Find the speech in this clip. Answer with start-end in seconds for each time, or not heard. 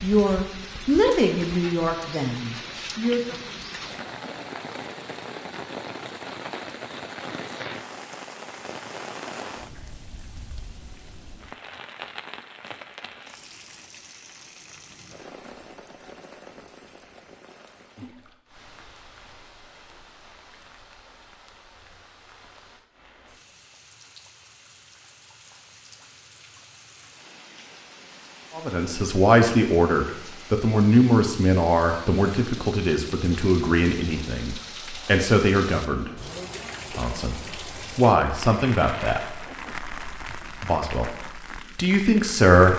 0.0-3.4, 28.6-36.1, 36.9-39.4, 40.6-41.1, 41.8-42.7.